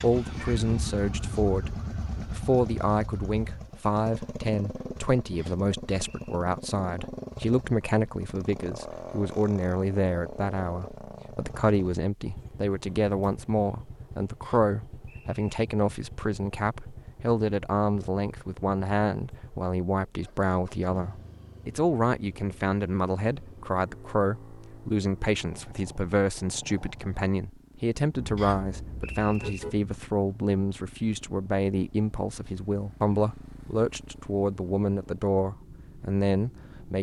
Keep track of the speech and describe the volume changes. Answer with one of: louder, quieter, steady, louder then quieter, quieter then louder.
steady.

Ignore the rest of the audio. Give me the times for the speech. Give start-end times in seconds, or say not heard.
0.0-36.9.